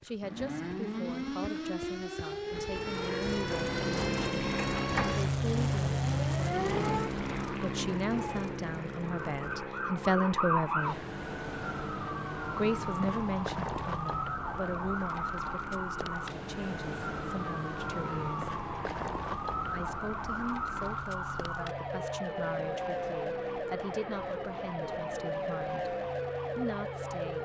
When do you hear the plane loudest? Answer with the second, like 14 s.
6 s.